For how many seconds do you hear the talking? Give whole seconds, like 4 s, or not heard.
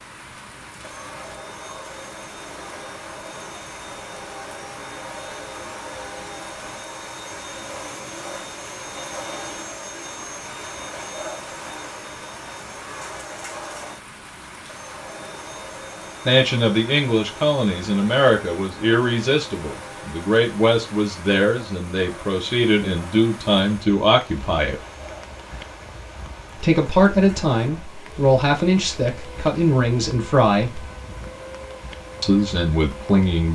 14 s.